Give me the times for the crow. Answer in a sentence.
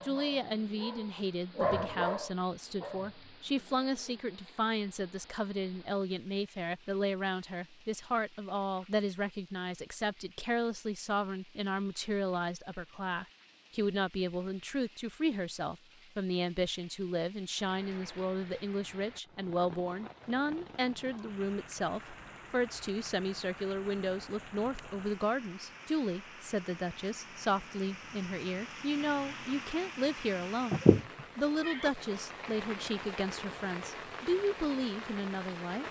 You can't hear the crow here.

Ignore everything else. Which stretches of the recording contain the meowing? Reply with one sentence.
The meowing can be heard from 30.7 to 32.5 s.